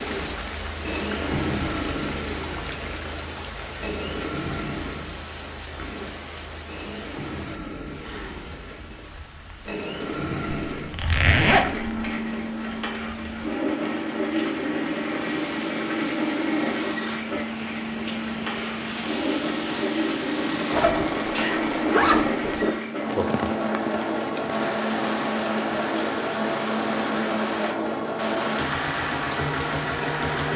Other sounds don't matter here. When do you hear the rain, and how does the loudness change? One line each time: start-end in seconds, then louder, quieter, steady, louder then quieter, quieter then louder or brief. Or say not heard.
0.0-30.5 quieter then louder.